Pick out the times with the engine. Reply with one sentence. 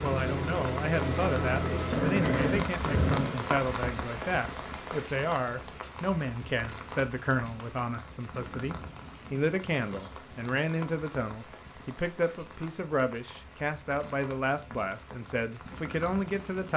The engine can be heard from 0.0 to 2.0 s.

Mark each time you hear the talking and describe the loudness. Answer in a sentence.
The talking can be heard from 0.0 to 16.7 s, at a steady volume.